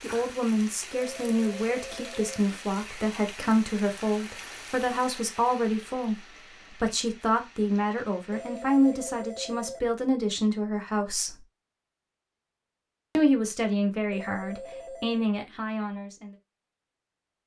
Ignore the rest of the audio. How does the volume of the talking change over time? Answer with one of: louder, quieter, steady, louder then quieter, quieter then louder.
steady.